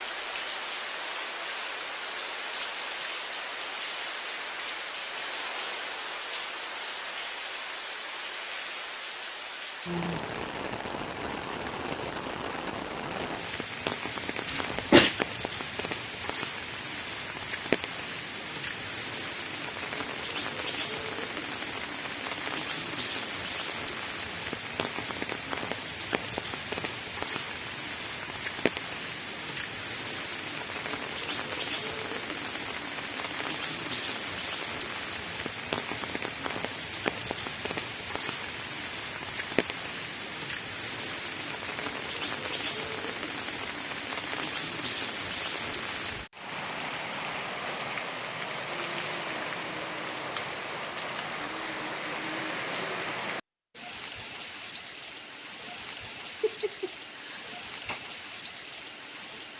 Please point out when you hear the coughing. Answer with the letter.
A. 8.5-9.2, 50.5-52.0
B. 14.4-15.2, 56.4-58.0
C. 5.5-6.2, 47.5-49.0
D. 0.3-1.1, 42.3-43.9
B.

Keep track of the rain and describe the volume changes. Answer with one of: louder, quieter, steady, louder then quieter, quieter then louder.
steady.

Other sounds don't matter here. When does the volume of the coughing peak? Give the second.
15 s.